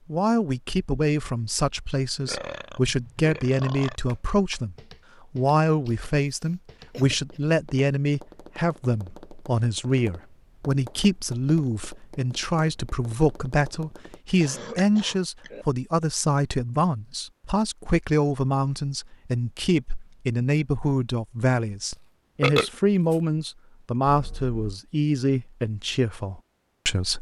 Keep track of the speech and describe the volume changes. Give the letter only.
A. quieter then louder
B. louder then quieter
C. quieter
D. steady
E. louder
D.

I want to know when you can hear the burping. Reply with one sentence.
You can hear the burping from 2.2 to 4.0 s, from 14.4 to 15.7 s and from 21.9 to 23.2 s.